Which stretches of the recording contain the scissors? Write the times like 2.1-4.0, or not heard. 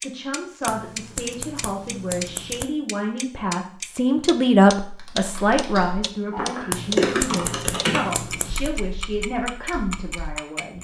0.7-2.6, 6.7-8.7.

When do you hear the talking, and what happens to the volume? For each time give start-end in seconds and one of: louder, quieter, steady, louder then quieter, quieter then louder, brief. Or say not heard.
0.0-10.7 louder then quieter.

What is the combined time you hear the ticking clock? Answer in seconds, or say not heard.
11 s.